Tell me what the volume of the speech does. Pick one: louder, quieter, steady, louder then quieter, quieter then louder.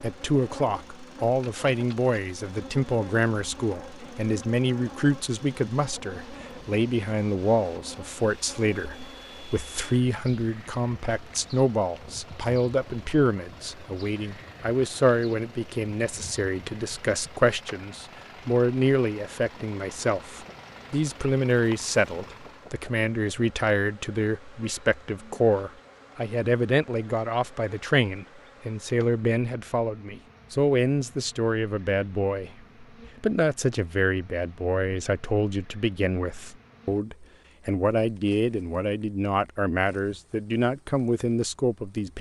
steady.